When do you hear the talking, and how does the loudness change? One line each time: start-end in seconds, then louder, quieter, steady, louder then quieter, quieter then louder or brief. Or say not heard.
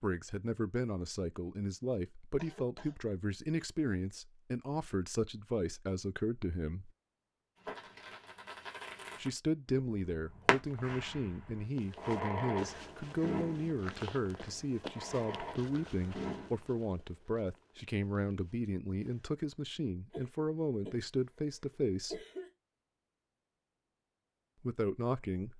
0.0-6.9 steady
9.2-22.2 steady
24.6-25.5 brief.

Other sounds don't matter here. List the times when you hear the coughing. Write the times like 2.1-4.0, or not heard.
2.4-3.0, 20.1-22.5.